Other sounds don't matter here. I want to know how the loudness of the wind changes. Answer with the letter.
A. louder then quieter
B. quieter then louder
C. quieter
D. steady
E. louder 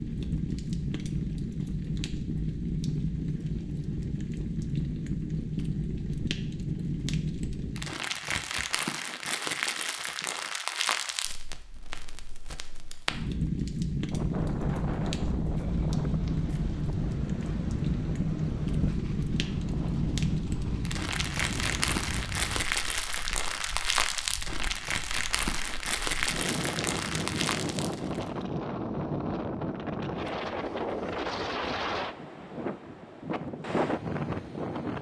B.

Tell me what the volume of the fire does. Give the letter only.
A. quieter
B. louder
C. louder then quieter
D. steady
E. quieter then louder
D.